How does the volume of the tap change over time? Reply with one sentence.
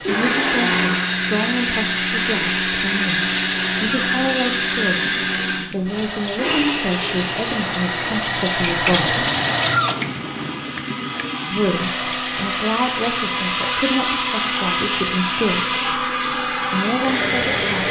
The loudness of the tap goes up, then down.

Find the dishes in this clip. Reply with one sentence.
You can't hear the dishes here.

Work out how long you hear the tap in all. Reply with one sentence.
The tap can be heard for 18 seconds in total.